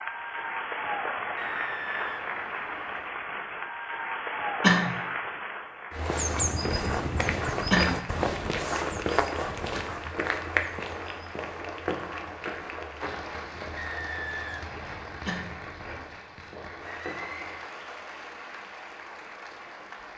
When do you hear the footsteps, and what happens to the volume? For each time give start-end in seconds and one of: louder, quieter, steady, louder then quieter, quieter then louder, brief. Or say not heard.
5.9-17.7 quieter.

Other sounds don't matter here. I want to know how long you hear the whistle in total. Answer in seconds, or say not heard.
3 s.